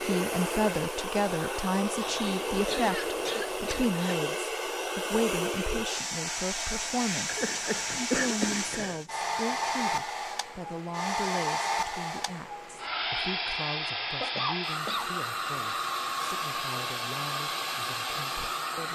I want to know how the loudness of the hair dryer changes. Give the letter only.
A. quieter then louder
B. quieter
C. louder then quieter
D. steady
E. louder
D.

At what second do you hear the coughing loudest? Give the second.
8 s.